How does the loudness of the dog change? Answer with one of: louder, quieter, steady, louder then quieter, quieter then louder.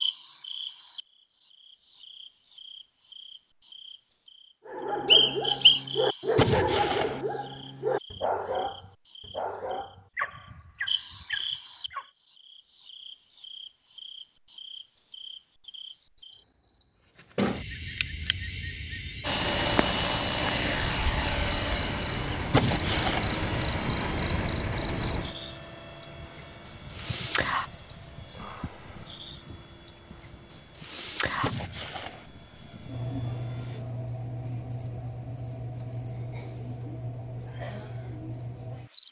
quieter.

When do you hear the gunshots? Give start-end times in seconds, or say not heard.
6.3-7.2, 22.5-23.4, 31.4-32.2.